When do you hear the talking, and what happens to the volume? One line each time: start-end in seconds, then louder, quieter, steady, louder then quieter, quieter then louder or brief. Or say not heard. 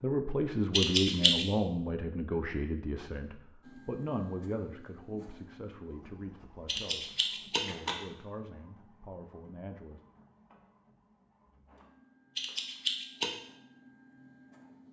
0.0-10.0 quieter.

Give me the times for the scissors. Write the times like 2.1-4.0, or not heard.
0.7-1.4, 6.7-8.0, 12.3-13.3.